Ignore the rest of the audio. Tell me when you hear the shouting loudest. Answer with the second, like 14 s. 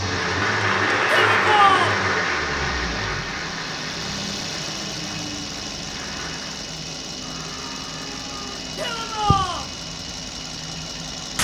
2 s.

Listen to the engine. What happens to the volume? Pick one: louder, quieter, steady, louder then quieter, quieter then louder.
steady.